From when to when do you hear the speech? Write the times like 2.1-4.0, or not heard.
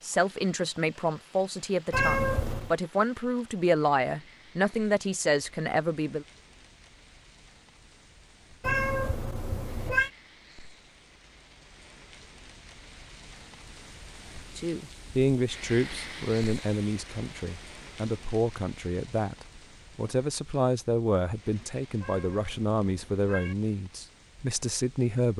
0.0-6.2, 14.6-25.3.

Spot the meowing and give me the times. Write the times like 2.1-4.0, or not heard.
1.9-2.8, 8.6-10.1, 22.0-23.6.